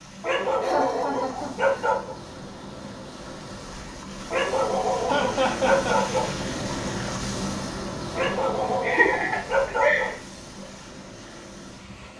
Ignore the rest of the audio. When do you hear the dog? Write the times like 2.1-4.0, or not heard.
0.2-2.1, 4.3-6.3, 8.2-10.2.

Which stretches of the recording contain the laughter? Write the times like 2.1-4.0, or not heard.
0.1-1.9, 5.0-6.1, 8.8-10.2.